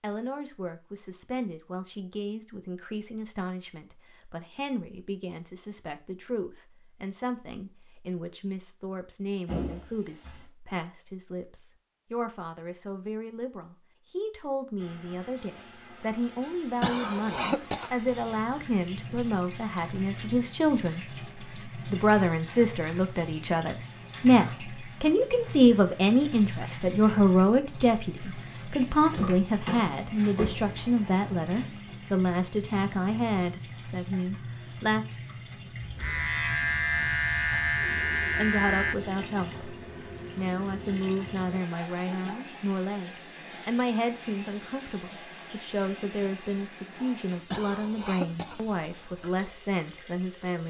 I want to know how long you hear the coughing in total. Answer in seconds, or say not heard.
3 s.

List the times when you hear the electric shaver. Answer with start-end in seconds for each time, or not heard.
35.8-39.0.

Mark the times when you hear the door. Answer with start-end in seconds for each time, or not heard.
9.4-10.4, 29.1-30.8.